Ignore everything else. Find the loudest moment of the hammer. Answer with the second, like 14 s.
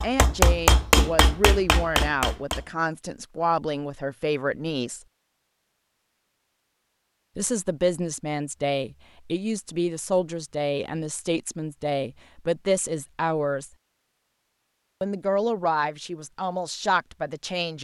1 s.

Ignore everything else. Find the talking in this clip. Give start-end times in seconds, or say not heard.
0.0-5.0, 7.3-13.7, 15.0-17.7.